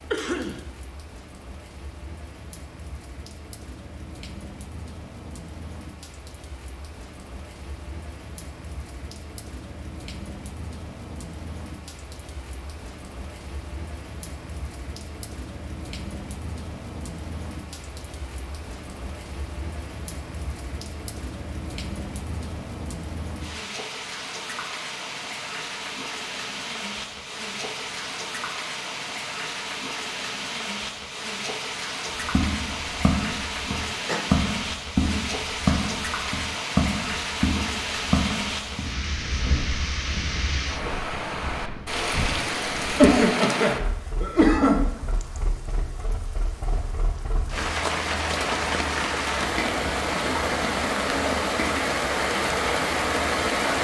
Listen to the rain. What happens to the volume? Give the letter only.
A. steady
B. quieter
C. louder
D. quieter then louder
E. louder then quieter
C.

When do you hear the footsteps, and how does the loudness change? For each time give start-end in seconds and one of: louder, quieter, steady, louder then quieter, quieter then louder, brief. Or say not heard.
32.1-43.1 quieter.